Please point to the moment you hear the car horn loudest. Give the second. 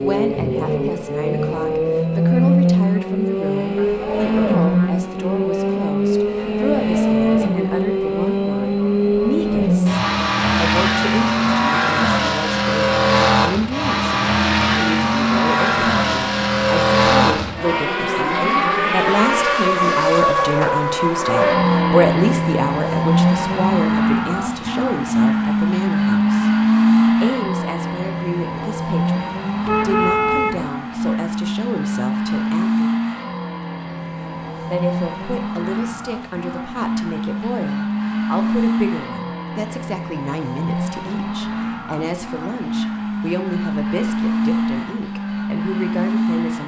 30 s.